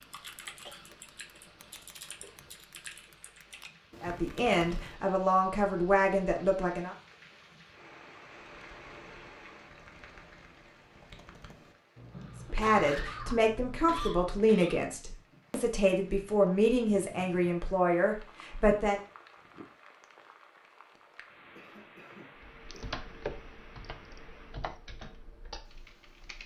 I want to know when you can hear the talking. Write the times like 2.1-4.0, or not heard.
4.0-7.0, 12.5-18.9.